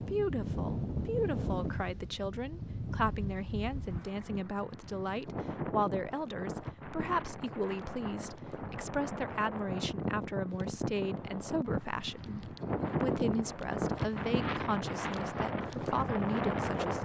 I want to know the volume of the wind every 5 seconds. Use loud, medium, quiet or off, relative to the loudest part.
medium, medium, loud, loud.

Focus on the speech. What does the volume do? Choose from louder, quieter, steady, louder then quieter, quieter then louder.
steady.